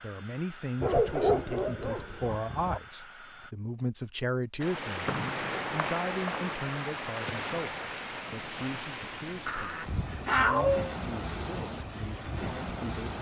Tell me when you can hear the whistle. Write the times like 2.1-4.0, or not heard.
5.0-6.7.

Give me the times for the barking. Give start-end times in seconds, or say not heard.
0.8-2.8, 9.4-10.9.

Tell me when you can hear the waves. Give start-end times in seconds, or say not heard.
4.6-13.1.